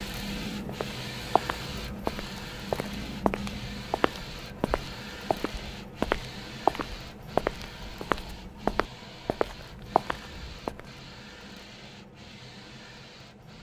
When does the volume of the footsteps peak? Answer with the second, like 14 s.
7 s.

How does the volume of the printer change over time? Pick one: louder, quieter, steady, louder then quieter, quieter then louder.
quieter.